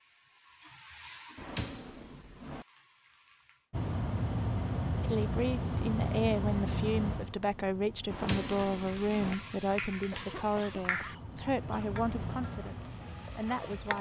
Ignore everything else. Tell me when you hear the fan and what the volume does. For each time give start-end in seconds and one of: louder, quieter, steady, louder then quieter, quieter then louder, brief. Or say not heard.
3.7-13.9 quieter then louder.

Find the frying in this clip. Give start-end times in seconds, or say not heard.
0.0-3.7, 8.2-13.9.